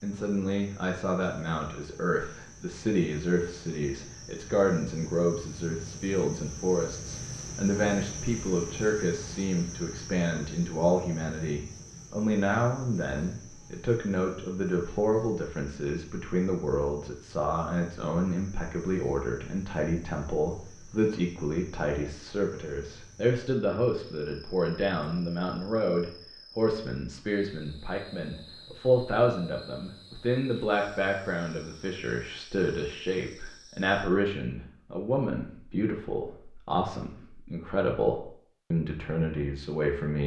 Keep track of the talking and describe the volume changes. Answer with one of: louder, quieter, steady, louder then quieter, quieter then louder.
steady.